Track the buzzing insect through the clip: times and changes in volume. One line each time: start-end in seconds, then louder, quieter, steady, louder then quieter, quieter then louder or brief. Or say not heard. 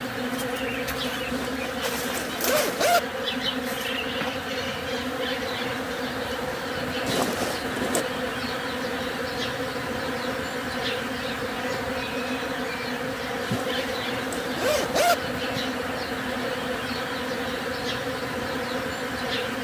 0.0-19.5 steady.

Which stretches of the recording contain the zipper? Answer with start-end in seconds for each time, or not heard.
1.3-3.0, 7.0-8.1, 13.4-15.2.